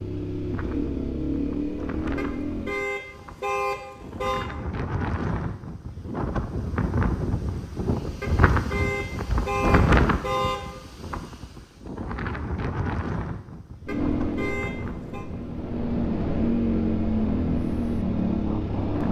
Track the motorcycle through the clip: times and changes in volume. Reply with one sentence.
The motorcycle can be heard briefly from 0.0 to 2.8 s; and from 13.8 to 19.0 s, getting louder.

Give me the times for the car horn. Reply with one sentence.
The car horn can be heard from 2.1 to 4.5 s, from 8.2 to 10.7 s and from 13.8 to 15.2 s.